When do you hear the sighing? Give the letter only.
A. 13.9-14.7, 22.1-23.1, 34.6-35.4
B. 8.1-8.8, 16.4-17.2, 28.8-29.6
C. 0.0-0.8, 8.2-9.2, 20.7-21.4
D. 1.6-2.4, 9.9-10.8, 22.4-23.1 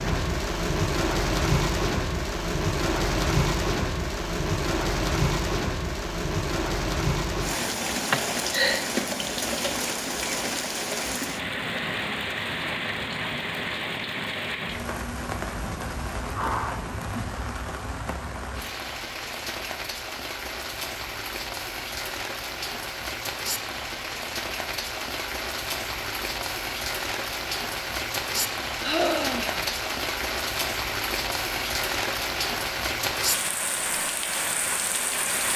B.